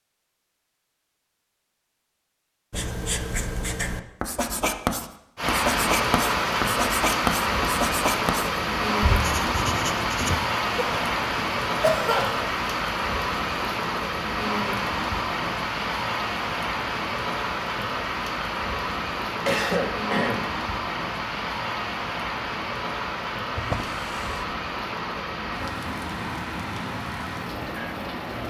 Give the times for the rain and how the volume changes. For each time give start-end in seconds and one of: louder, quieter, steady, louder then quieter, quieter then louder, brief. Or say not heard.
5.3-28.4 quieter.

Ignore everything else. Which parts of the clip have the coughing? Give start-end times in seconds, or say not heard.
10.8-12.4, 19.4-20.5.